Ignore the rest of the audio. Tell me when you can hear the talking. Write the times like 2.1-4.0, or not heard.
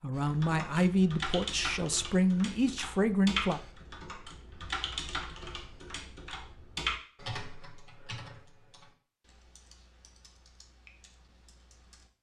0.0-3.6.